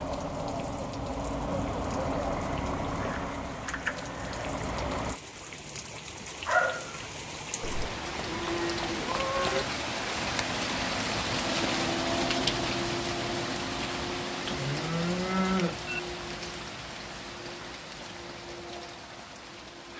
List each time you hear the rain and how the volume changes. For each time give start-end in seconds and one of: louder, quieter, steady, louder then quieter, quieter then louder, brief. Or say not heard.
0.0-19.9 louder then quieter.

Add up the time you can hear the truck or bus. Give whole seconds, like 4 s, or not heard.
5 s.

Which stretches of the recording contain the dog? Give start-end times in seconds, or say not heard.
6.5-7.0.